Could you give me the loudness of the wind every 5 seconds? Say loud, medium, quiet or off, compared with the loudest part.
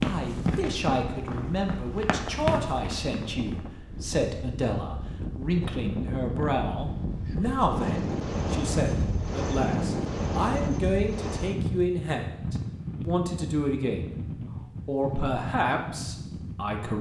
medium, loud, loud, medium.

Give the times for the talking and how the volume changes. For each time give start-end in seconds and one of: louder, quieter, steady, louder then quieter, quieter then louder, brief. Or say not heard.
0.0-14.2 steady
14.8-16.9 brief.